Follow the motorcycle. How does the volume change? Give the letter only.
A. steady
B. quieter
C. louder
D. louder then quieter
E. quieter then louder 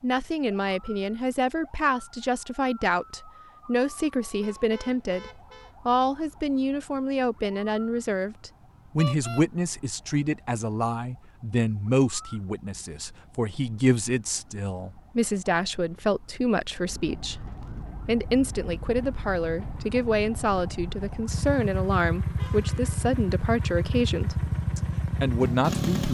C.